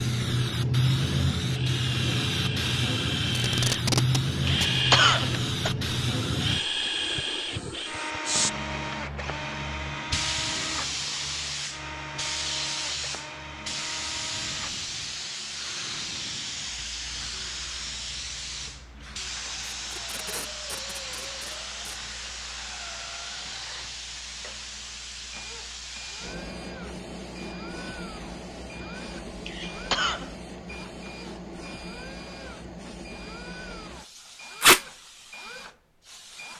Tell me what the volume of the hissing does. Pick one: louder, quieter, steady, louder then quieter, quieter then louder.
quieter.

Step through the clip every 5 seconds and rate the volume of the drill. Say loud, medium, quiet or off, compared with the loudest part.
loud, loud, medium, quiet, quiet, quiet, quiet, quiet.